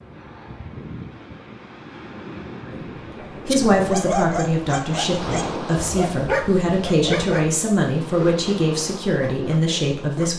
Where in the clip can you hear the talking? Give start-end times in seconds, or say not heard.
2.6-10.3.